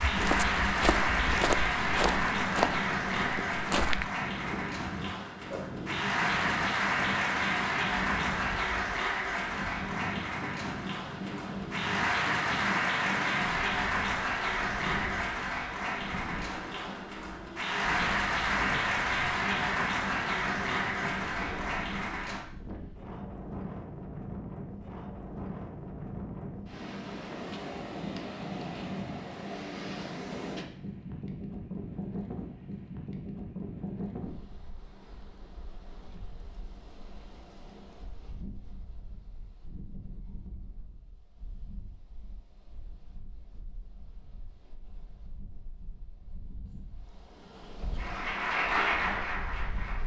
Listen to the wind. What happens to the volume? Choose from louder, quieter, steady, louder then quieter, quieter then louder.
quieter.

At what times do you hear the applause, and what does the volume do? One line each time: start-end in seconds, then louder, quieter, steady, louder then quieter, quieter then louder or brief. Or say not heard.
0.0-22.4 steady
48.0-50.0 brief.